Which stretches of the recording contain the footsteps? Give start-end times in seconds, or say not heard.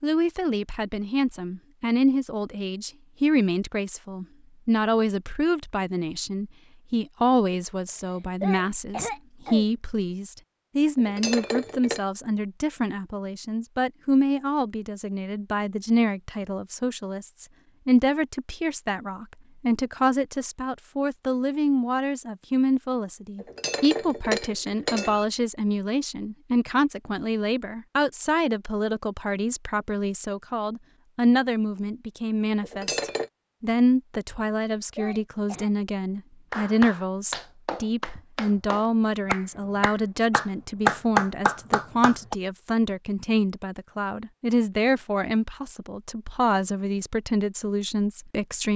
not heard.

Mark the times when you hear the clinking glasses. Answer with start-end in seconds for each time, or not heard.
10.9-12.0, 23.4-25.2, 32.6-33.3.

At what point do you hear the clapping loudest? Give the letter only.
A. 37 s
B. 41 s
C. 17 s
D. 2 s
B.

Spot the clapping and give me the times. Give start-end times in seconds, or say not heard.
36.5-42.4.